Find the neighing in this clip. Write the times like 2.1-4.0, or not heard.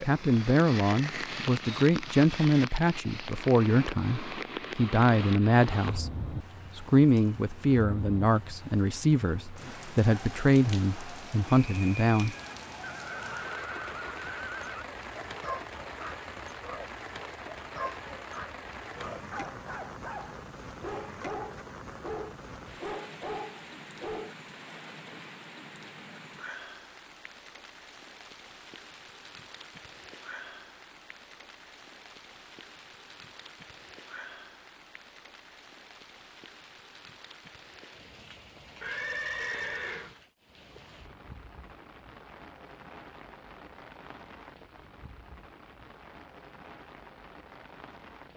12.8-14.8, 38.8-40.1.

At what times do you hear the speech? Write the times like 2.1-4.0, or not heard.
0.0-12.3.